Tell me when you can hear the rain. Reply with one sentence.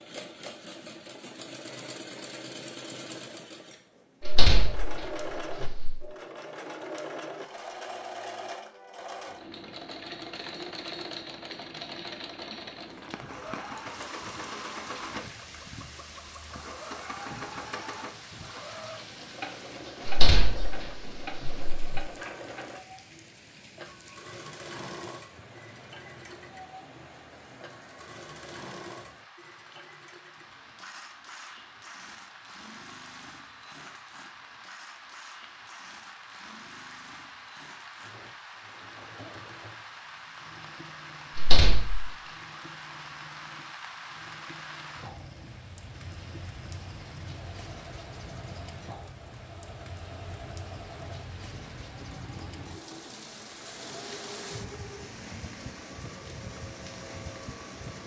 You can hear the rain from 12.8 to 58.0 s.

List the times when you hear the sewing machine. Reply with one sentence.
You can hear the sewing machine from 0.0 to 58.0 s.